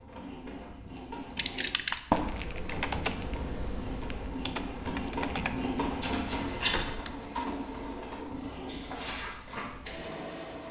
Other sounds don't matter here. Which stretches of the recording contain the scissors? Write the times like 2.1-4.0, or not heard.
0.9-1.4, 6.0-7.0.